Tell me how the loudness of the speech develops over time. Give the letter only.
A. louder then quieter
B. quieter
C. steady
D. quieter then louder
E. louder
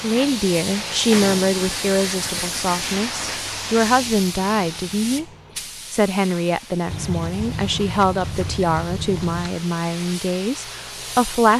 C.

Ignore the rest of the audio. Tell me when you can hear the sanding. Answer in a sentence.
You can hear the sanding from 1.6 to 3.5 s and from 6.8 to 9.5 s.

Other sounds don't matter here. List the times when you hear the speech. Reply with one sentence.
You can hear the speech from 0.0 to 5.2 s and from 5.9 to 11.5 s.